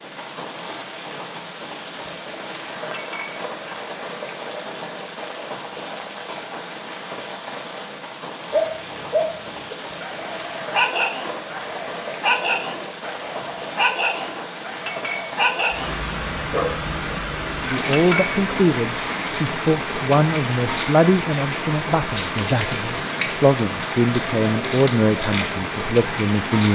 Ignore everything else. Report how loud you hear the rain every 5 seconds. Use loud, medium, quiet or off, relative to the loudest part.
medium, medium, medium, loud, loud, loud.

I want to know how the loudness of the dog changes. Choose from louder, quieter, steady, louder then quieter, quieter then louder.
steady.